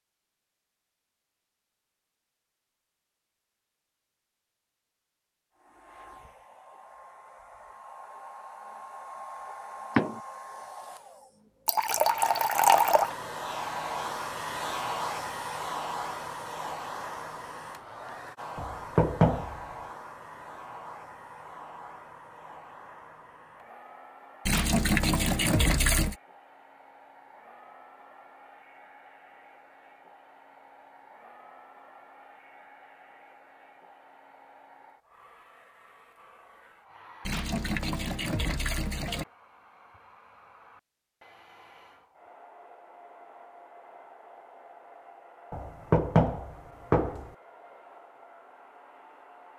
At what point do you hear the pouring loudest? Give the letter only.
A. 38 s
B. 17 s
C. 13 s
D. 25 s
C.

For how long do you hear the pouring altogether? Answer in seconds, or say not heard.
5 s.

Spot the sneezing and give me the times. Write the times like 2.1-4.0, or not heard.
not heard.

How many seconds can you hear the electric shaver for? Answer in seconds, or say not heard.
not heard.